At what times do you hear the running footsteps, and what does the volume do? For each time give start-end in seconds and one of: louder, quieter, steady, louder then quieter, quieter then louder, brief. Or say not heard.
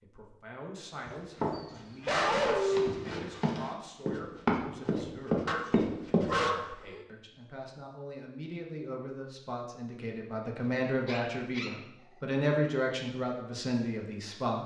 0.9-6.3 louder.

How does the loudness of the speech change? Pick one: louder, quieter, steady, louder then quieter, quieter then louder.
louder.